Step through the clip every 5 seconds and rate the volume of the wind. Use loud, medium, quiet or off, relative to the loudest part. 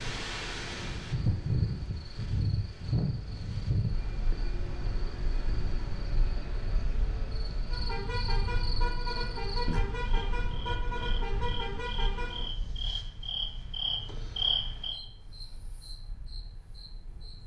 loud, medium, quiet, quiet.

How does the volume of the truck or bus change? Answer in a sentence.
The loudness of the truck or bus goes up.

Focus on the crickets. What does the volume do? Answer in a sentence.
The volume of the crickets goes up.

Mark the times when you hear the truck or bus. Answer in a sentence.
The truck or bus can be heard from 0.0 to 12.5 s.